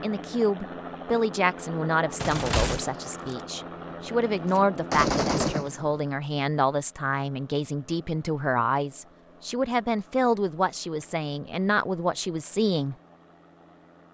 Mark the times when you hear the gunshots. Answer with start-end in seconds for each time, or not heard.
2.2-3.5, 4.0-6.0.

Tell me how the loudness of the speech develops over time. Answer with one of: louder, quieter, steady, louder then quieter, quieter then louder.
steady.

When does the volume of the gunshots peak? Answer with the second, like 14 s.
5 s.